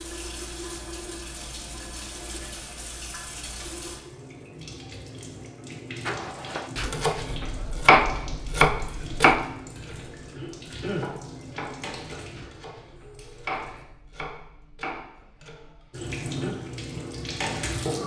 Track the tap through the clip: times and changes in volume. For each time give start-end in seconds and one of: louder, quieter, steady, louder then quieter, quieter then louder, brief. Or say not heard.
0.0-13.8 steady
15.9-18.0 brief.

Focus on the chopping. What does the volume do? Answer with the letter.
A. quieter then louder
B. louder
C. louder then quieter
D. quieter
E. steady
D.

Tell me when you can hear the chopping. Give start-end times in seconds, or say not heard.
6.0-16.5.